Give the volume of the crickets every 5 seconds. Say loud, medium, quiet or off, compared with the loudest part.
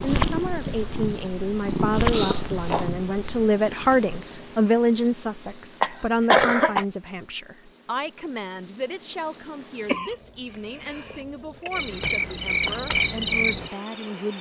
loud, medium, loud.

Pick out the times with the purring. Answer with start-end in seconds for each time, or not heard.
0.0-4.5.